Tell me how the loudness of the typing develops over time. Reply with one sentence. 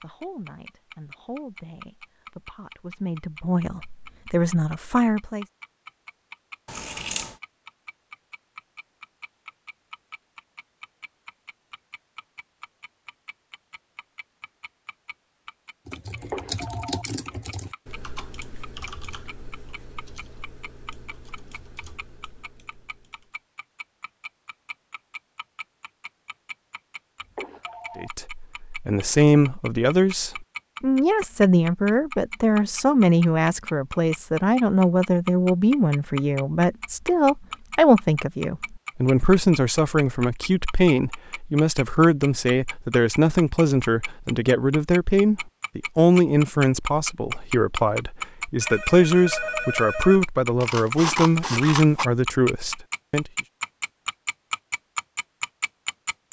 The loudness of the typing goes down.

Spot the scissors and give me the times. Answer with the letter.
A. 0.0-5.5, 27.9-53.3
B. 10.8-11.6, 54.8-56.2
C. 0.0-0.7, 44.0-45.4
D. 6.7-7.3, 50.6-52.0
D.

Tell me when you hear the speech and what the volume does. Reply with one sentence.
The speech can be heard from 0.0 to 5.5 s, getting louder; and from 27.9 to 53.3 s, at a steady volume.